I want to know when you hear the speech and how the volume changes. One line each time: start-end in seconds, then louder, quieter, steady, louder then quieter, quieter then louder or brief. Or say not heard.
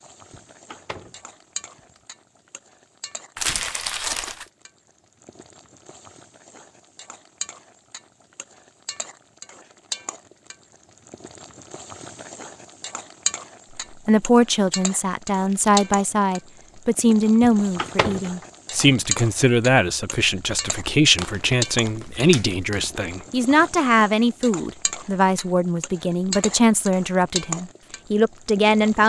14.1-29.0 steady.